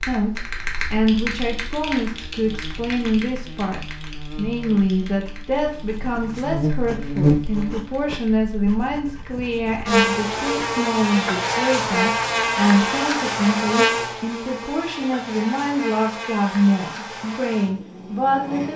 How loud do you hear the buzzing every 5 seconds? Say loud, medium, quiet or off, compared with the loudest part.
quiet, loud, loud, medium.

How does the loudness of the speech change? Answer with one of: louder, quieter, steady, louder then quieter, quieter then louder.
steady.